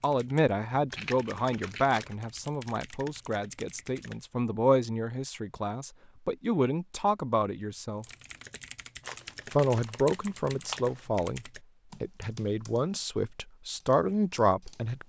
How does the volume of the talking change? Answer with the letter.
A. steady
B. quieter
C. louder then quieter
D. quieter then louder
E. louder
A.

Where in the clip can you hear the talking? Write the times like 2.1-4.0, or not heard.
0.0-8.1, 9.5-15.0.